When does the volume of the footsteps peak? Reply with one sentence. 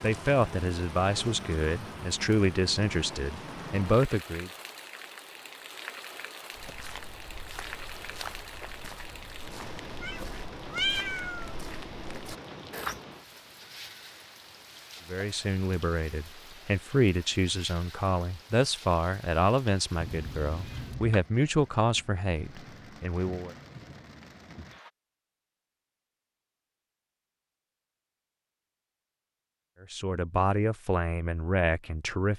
The loudest moment of the footsteps is at 13 seconds.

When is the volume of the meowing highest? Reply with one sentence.
The loudest moment of the meowing is at 11 seconds.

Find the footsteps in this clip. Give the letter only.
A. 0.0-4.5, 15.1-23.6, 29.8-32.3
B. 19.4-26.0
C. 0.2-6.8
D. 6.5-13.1
D.